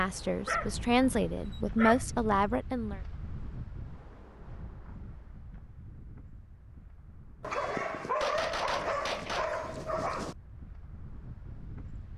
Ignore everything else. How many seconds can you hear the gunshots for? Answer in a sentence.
The gunshots can be heard for 2 seconds in total.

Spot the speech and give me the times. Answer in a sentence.
The speech can be heard from 0.0 to 3.0 s.